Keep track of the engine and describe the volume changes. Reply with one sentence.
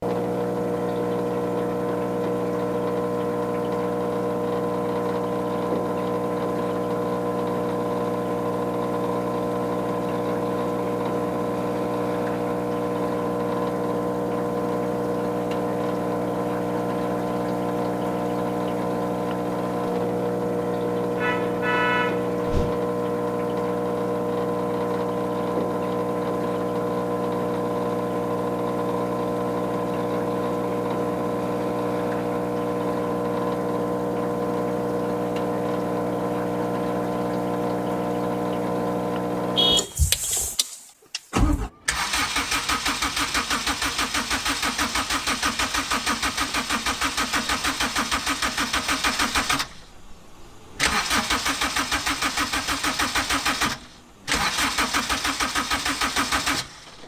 The loudness of the engine stays about the same.